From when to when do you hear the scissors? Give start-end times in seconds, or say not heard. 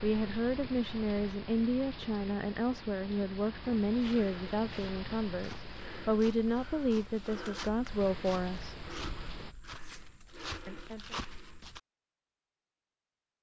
9.8-10.4.